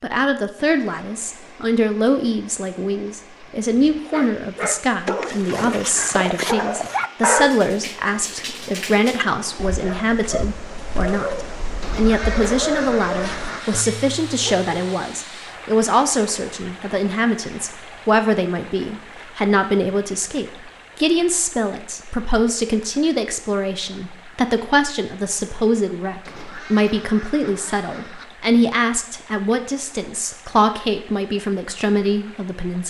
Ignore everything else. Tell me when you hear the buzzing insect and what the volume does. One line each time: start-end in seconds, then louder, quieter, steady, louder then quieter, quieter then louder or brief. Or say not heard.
not heard.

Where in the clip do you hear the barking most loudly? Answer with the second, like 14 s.
7 s.